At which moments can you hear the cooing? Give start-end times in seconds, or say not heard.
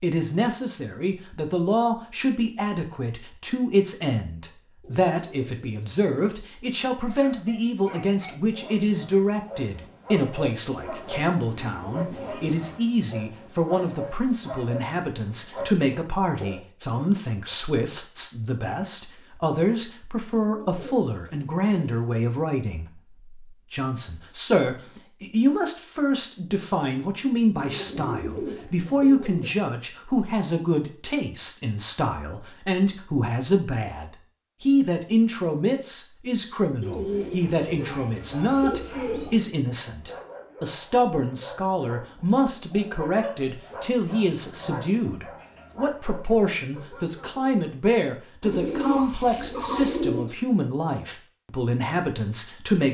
4.8-6.8, 10.8-12.8, 20.4-22.1, 27.5-29.6, 36.8-39.5, 48.4-50.3.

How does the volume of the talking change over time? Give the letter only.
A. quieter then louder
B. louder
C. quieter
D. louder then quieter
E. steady
E.